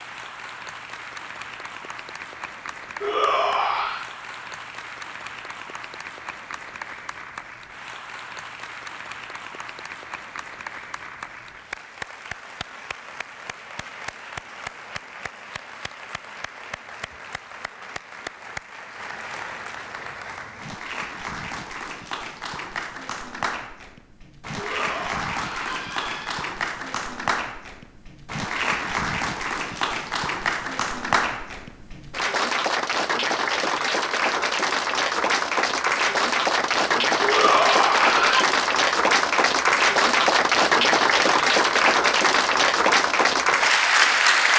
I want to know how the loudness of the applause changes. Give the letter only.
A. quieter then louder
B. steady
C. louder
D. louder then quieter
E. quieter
C.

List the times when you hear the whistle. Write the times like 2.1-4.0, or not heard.
not heard.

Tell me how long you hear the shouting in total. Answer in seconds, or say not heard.
4 s.